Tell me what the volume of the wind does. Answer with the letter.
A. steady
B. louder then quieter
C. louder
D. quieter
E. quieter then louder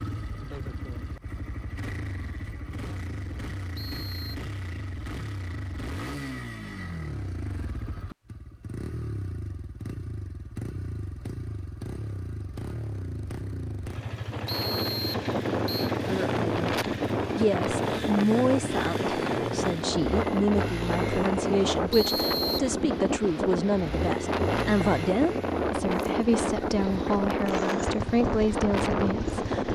A.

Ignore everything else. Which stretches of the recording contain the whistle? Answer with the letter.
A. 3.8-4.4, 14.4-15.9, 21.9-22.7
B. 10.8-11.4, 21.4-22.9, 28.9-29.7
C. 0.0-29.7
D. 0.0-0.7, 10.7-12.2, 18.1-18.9
A.